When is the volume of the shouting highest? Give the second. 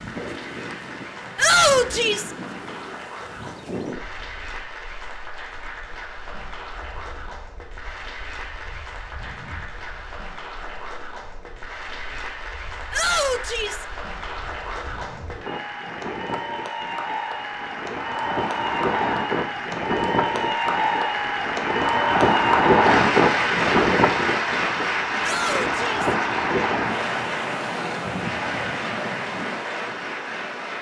2 s.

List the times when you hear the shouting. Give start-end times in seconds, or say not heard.
1.4-2.3, 12.9-13.8, 25.2-26.1.